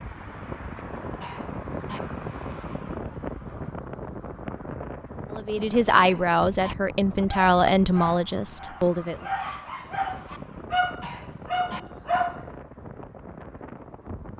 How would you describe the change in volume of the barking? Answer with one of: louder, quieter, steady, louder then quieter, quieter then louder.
louder.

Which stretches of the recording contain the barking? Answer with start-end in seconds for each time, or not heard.
7.3-12.4.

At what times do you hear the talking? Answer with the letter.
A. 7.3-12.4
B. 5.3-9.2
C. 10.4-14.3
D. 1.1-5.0
B.